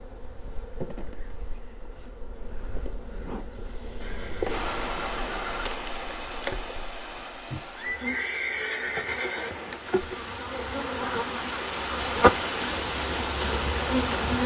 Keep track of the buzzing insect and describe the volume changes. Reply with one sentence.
The loudness of the buzzing insect goes up.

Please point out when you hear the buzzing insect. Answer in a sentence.
The buzzing insect can be heard from 0.0 to 14.4 s.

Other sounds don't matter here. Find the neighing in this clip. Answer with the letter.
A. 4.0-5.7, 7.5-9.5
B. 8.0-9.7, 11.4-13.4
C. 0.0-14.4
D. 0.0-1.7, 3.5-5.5
A.